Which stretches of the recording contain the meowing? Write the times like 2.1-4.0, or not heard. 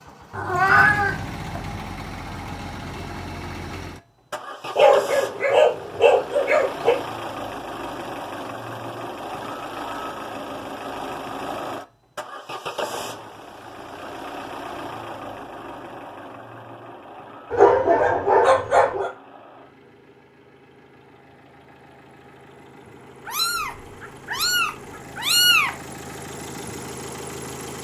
0.3-1.8, 23.2-25.7.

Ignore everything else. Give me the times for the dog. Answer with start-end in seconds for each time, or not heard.
4.8-7.0, 17.5-19.1.